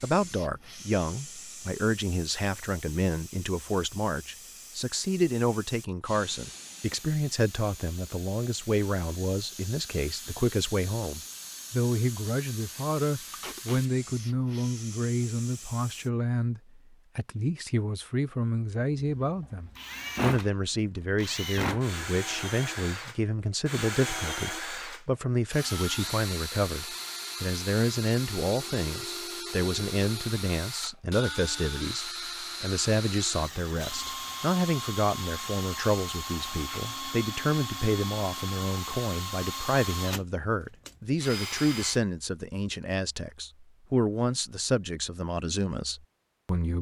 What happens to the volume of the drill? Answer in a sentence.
The volume of the drill stays about the same.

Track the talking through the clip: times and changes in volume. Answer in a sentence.
The talking can be heard from 0.0 to 46.7 s, at a steady volume.